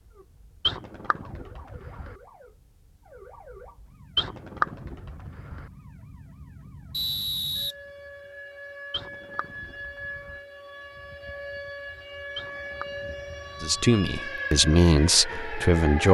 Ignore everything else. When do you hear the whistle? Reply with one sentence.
You can hear the whistle from 6.9 to 7.8 s.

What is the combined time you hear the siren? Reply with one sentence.
You can hear the siren for 16 seconds altogether.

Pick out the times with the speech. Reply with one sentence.
The speech can be heard from 13.6 to 16.0 s.